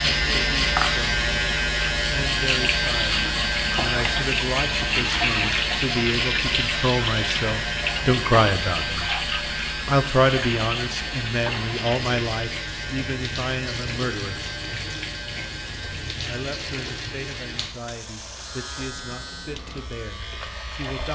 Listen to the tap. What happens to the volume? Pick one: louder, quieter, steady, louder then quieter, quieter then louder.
quieter.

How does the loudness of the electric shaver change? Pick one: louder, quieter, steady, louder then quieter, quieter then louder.
quieter.